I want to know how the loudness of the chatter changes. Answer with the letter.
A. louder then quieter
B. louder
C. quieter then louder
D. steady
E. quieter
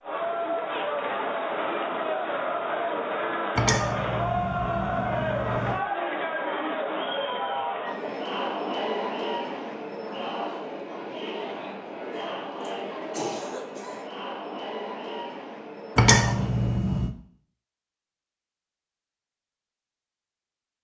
E.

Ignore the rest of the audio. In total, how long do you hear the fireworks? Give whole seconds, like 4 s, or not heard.
not heard.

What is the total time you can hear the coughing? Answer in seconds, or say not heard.
2 s.